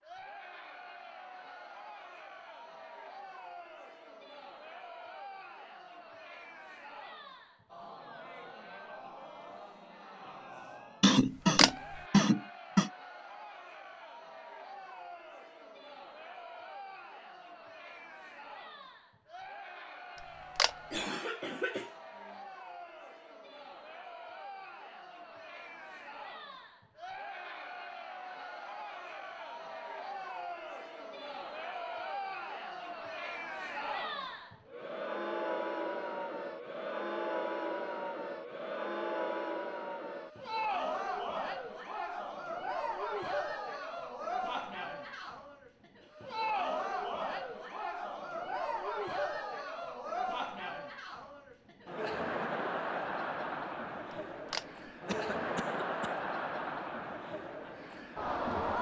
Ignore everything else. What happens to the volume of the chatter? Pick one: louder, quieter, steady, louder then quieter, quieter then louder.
louder.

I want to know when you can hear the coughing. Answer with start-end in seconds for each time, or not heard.
11.0-12.9, 20.9-22.4, 55.0-56.1.